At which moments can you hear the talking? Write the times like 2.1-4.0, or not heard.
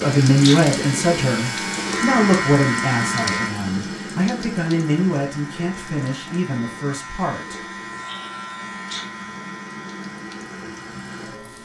0.0-7.6.